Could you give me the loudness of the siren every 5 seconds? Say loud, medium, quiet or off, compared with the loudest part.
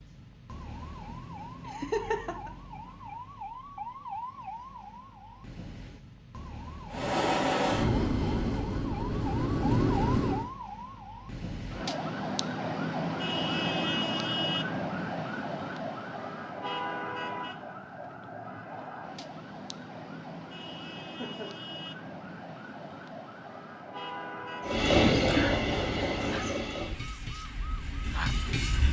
medium, medium, loud, medium, medium, medium.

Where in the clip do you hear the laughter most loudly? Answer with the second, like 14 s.
2 s.